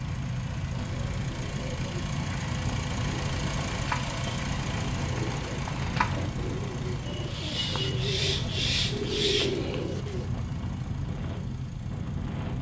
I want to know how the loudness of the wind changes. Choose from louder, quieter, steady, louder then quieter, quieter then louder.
steady.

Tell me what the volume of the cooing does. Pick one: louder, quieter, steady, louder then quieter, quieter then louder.
louder.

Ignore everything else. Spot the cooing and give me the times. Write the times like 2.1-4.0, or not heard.
0.8-10.3.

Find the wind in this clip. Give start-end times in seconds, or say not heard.
0.0-12.5.